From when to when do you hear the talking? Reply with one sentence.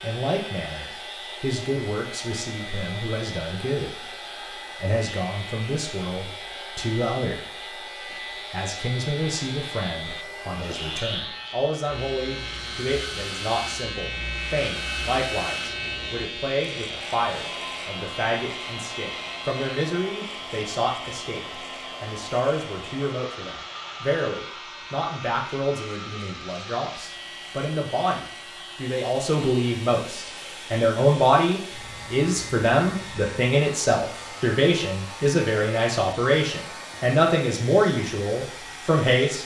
You can hear the talking from 0.0 to 4.0 s, from 4.8 to 7.8 s and from 8.5 to 39.4 s.